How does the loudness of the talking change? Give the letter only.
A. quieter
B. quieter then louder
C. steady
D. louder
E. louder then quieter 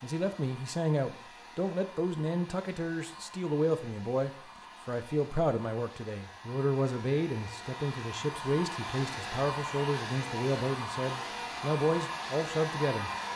C.